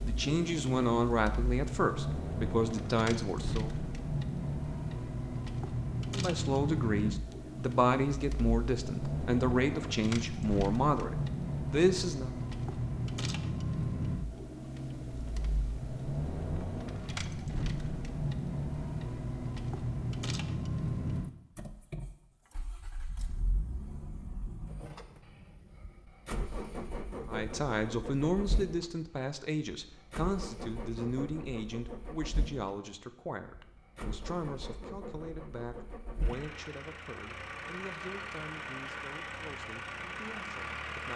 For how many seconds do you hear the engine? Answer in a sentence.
The engine can be heard for 41 seconds in total.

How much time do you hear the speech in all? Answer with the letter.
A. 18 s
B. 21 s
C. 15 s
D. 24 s
D.